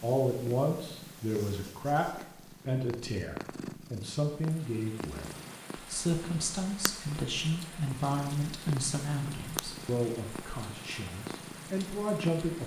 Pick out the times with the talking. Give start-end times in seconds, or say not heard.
0.0-12.6.